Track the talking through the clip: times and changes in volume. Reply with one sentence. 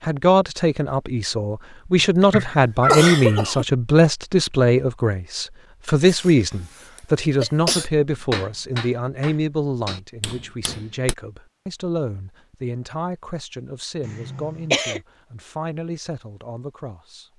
You can hear the talking from 0.0 to 17.3 s, getting quieter.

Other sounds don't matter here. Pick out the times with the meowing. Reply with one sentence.
The meowing can be heard from 2.3 to 3.5 s.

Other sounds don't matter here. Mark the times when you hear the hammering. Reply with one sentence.
You can hear the hammering from 8.3 to 11.2 s.